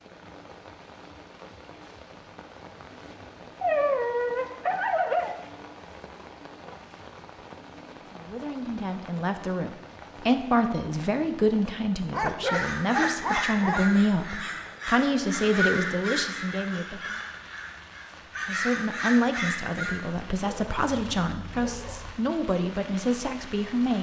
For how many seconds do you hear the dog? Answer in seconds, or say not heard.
5 s.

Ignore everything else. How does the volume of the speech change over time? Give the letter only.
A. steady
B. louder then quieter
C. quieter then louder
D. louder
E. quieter
A.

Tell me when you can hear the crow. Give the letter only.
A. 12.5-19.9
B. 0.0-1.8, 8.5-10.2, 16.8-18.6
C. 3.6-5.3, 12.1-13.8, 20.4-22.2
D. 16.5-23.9
A.